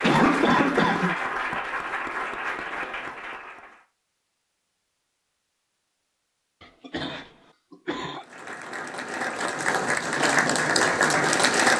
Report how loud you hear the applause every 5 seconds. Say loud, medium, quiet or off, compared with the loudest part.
medium, medium, loud.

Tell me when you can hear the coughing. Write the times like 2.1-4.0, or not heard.
0.0-1.1, 6.6-8.2.